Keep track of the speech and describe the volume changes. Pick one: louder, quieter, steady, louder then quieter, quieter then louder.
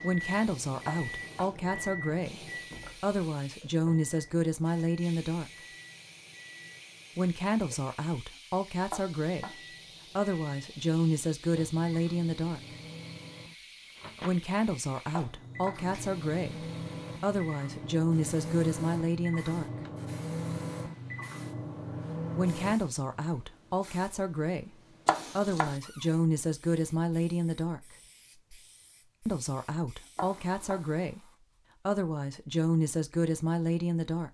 steady.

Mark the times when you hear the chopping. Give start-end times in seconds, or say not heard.
0.8-1.6, 8.9-9.6, 15.1-15.8, 25.1-25.8, 30.1-30.9.